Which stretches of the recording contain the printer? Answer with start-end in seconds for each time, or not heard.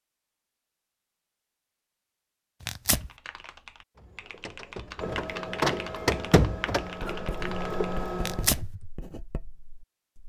4.0-8.6.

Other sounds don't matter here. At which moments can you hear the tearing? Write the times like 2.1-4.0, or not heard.
2.6-3.1, 8.2-8.7.